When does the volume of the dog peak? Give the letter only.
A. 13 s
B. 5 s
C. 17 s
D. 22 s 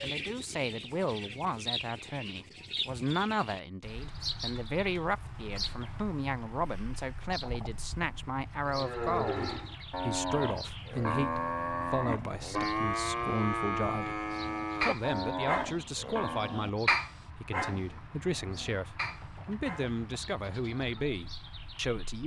C.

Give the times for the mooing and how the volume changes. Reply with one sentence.
You can hear the mooing from 8.7 to 16.6 s, at a steady volume.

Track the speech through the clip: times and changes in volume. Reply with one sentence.
The speech can be heard from 0.0 to 22.2 s, at a steady volume.